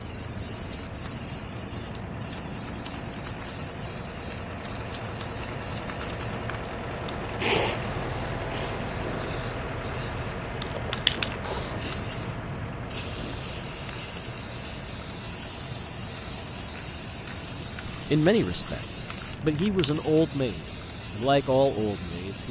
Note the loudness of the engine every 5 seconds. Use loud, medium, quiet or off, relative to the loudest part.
medium, loud, loud, medium, quiet.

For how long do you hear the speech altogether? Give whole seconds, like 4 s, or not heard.
4 s.